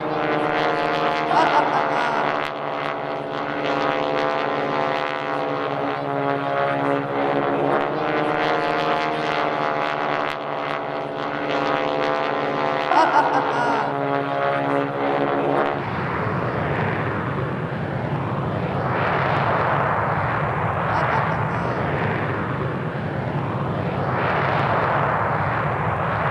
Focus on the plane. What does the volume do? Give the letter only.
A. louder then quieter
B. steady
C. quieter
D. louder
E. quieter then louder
B.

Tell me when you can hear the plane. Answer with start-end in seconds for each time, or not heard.
0.0-26.2.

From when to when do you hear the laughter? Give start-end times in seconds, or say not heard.
1.3-2.4, 12.9-13.9, 20.9-21.9.